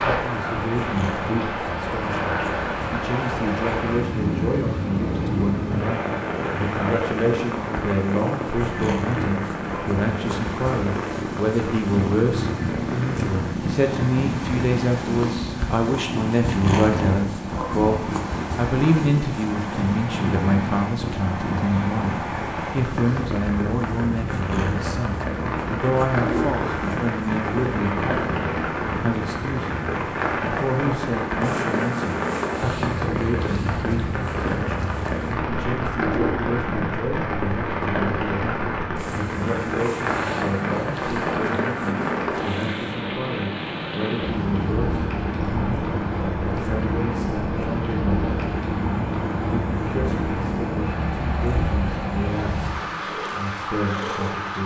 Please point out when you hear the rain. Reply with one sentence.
The rain can be heard from 0.0 to 54.6 s.